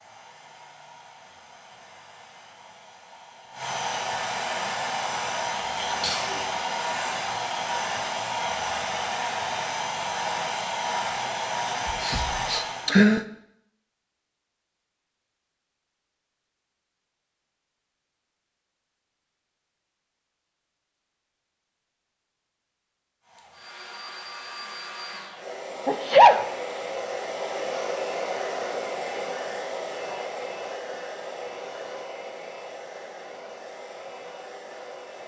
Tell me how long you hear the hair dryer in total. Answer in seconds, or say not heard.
25 s.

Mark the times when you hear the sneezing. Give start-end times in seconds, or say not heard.
5.8-6.4, 11.8-13.2, 25.9-26.4.